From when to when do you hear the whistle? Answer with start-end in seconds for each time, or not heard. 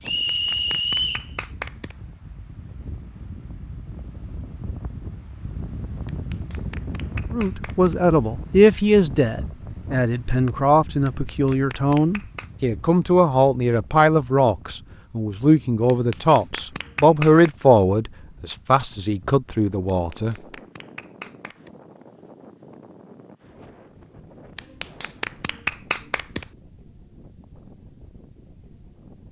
0.0-1.2.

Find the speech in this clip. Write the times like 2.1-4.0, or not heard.
7.3-20.4.